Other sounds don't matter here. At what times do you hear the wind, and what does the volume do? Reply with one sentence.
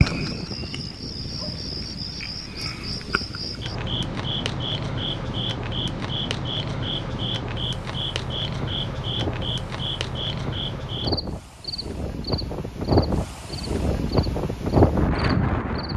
The wind can be heard from 0.0 to 15.9 s, getting louder.